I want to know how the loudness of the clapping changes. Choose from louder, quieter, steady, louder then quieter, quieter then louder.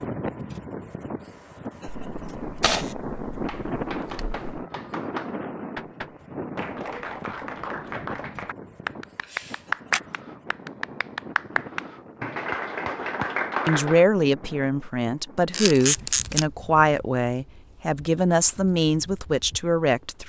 louder.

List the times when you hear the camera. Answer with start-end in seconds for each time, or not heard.
1.9-4.7, 9.2-10.0, 15.5-16.4.